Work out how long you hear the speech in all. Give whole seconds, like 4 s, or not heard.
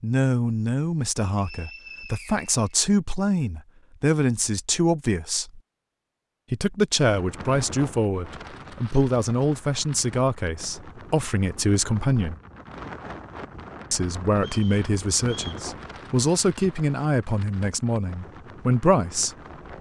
17 s.